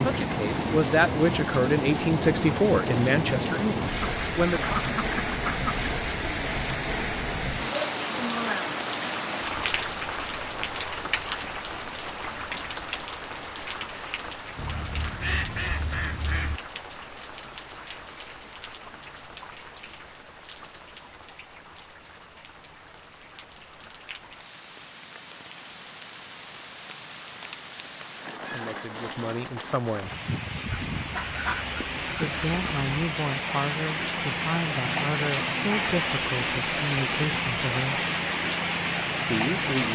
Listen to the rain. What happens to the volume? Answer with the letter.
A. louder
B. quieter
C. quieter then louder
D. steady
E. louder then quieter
C.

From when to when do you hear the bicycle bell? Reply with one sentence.
The bicycle bell can't be heard in this clip.